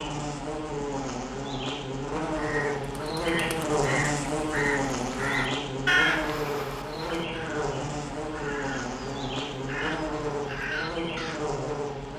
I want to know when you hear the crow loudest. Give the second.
6 s.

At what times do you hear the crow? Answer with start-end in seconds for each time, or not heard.
2.4-11.4.